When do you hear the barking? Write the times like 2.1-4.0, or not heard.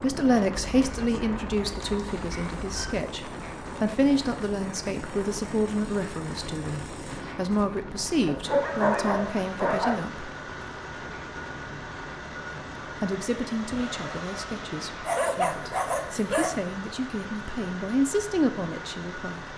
0.8-3.0, 8.2-10.1, 15.1-16.6.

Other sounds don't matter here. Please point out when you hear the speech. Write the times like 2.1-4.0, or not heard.
0.0-10.3, 12.5-19.5.